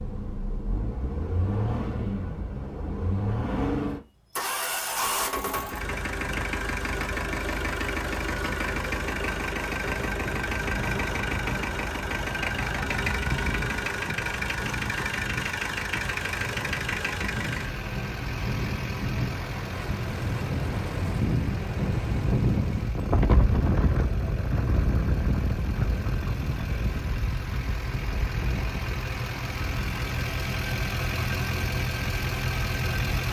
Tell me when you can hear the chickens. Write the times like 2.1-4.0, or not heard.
not heard.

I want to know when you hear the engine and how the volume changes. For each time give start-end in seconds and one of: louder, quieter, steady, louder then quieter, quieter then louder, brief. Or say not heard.
0.0-33.2 quieter then louder.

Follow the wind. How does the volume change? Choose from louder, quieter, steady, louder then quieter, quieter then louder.
louder then quieter.